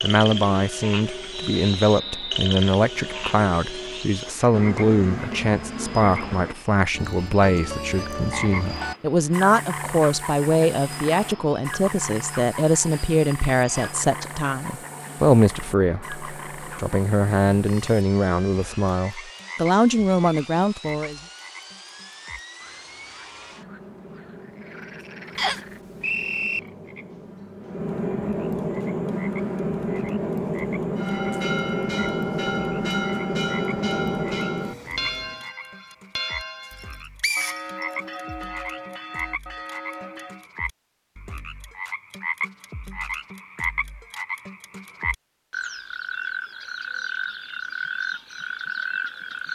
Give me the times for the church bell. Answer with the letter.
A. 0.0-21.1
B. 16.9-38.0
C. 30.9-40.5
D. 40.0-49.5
C.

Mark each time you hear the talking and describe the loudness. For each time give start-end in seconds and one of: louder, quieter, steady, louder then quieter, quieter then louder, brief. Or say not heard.
0.0-21.1 steady.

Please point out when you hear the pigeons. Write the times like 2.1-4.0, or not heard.
not heard.